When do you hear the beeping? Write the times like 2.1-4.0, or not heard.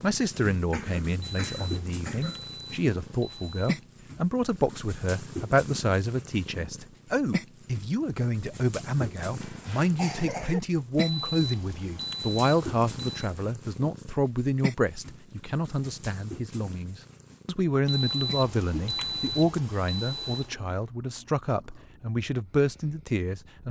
1.2-3.8, 10.9-13.3, 17.9-20.6.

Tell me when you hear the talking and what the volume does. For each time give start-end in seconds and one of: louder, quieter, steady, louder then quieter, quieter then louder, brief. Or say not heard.
0.0-23.6 steady.